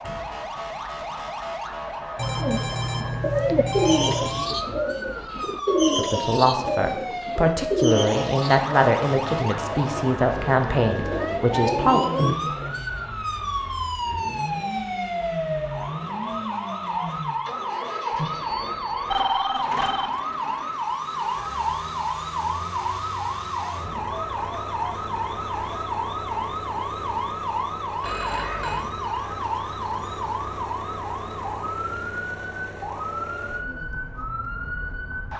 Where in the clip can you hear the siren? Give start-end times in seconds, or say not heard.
0.0-35.3.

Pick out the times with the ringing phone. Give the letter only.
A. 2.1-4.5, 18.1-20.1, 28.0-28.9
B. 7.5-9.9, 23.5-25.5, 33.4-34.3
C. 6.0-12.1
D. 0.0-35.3
A.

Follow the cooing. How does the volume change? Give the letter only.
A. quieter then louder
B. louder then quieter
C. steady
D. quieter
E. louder
A.